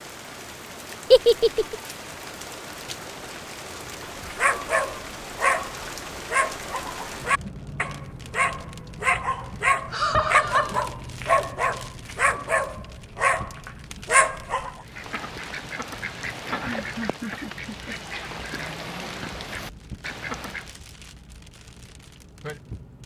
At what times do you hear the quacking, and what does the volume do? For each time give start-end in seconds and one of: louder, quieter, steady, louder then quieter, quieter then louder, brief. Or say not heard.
14.8-20.8 steady.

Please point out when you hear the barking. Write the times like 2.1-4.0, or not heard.
4.2-14.7.